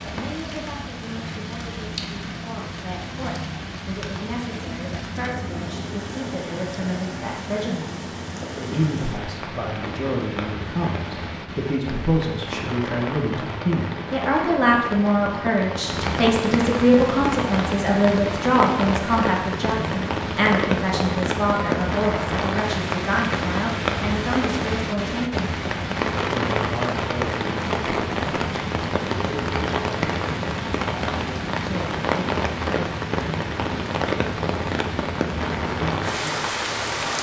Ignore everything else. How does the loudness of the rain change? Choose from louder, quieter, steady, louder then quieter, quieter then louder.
louder.